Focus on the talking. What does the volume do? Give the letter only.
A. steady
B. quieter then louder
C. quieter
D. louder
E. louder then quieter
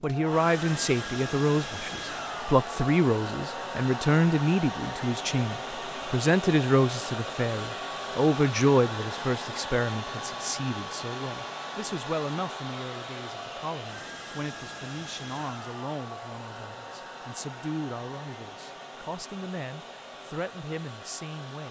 C.